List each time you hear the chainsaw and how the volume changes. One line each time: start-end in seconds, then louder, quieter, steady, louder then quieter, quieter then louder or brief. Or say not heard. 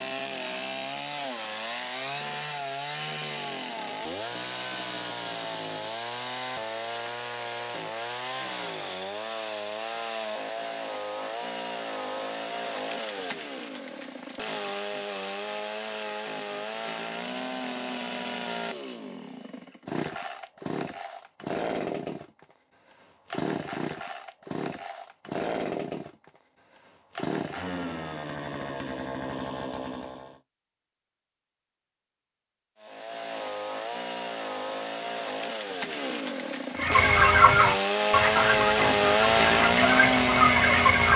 0.0-30.4 steady
32.8-41.1 louder.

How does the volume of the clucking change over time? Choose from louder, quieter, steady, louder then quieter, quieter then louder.
quieter then louder.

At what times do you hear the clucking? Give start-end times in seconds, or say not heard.
36.8-41.1.